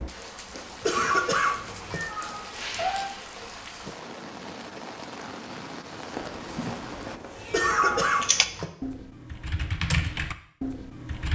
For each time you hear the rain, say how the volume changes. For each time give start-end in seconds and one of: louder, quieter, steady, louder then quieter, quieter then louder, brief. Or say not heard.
0.0-7.2 steady.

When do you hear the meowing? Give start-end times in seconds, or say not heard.
0.5-3.1, 6.2-8.3.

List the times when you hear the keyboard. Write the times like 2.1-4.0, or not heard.
8.2-11.3.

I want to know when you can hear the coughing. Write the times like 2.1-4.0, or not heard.
0.8-2.0, 7.5-8.7.